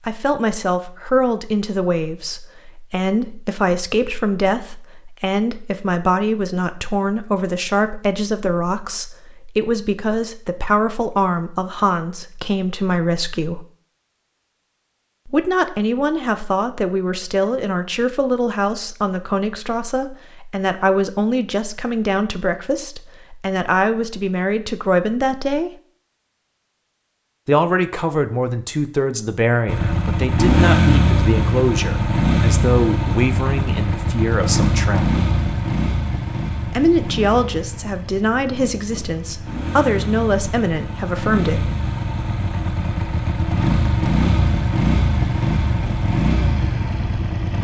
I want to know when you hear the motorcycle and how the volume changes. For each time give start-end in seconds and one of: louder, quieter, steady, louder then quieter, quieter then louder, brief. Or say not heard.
29.6-47.5 quieter then louder.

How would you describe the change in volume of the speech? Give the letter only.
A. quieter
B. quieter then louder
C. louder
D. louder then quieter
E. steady
E.